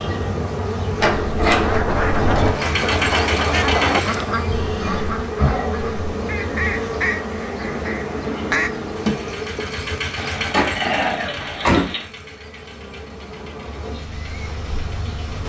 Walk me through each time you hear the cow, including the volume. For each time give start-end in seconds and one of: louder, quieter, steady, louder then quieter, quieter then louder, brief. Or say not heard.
not heard.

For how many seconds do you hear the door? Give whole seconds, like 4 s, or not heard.
3 s.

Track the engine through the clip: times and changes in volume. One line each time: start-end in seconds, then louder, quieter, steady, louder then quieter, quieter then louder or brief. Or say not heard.
2.5-4.2 brief
8.9-15.4 quieter.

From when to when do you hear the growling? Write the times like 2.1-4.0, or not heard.
4.5-5.8, 10.2-12.1.